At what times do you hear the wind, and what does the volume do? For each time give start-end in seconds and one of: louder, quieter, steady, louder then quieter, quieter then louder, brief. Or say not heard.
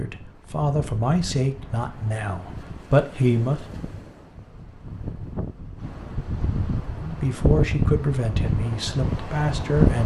0.0-10.0 louder.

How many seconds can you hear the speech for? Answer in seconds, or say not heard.
7 s.